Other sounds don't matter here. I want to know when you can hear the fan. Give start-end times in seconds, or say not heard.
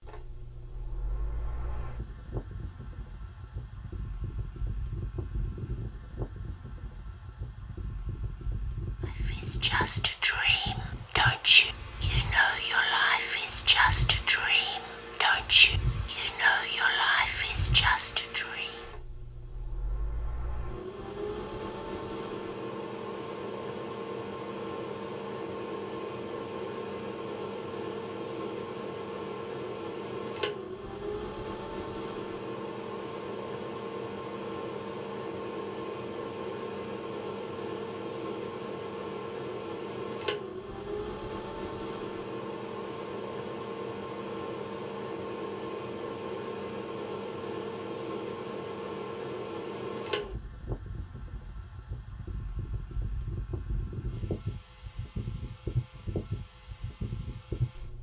0.0-57.9.